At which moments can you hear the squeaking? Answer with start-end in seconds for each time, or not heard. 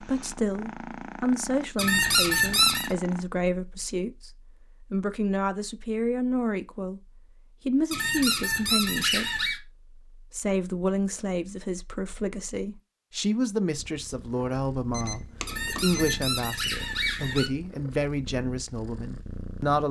1.8-2.9, 7.9-9.6, 15.4-17.5.